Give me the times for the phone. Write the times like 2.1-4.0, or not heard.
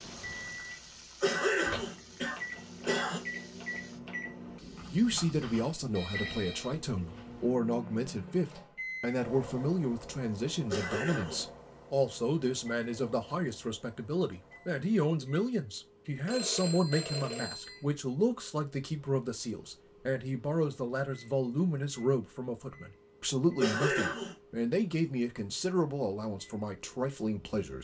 5.9-6.8, 16.2-17.8.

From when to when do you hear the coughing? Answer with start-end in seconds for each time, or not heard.
1.2-3.2, 10.7-11.4, 23.6-24.4.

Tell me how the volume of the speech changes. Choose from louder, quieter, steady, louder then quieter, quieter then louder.
steady.